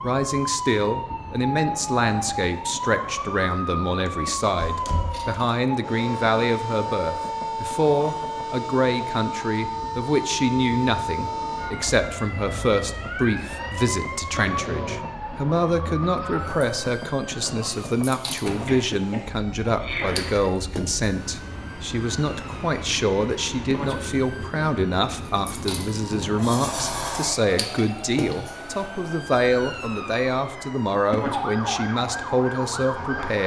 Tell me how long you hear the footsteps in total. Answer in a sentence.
The footsteps can't be heard in this clip.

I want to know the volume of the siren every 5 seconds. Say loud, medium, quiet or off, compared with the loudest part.
loud, loud, loud, medium, medium, medium, loud.